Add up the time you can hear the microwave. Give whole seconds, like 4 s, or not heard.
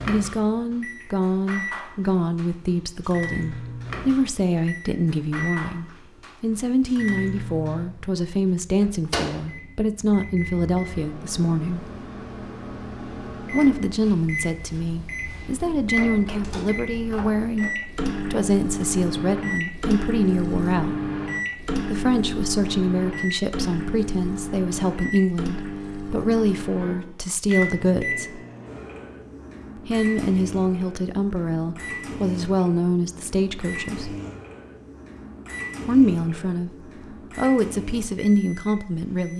39 s.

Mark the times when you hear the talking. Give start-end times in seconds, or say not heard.
0.1-11.8, 13.5-21.1, 21.8-28.4, 29.9-34.1, 35.9-36.7, 37.4-39.3.